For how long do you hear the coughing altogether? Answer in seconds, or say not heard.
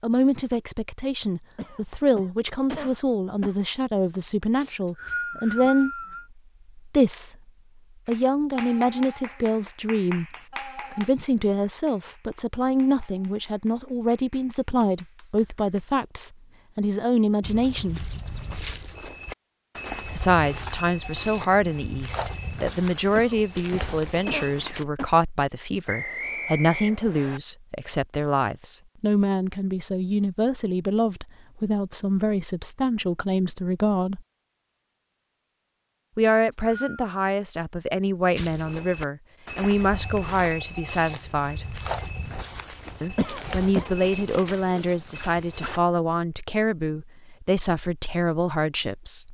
5 s.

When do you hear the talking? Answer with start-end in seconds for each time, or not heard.
0.0-6.0, 6.8-7.3, 8.1-18.1, 20.1-34.2, 36.1-41.6, 43.0-49.2.